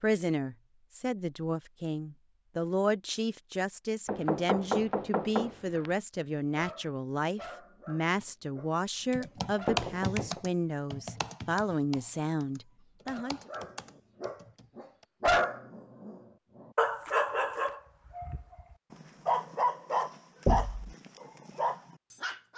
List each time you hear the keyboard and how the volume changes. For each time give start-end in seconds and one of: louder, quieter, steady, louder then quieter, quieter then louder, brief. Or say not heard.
9.1-15.1 quieter.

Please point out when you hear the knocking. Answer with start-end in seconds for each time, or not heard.
4.0-5.9, 9.7-10.4, 20.4-20.9.